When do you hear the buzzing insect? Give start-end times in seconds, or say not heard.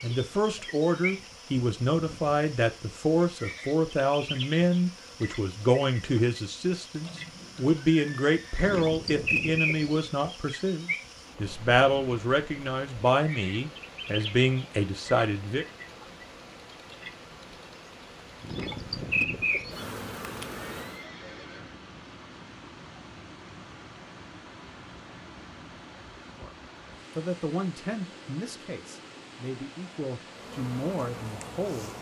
0.0-21.1, 30.4-31.9.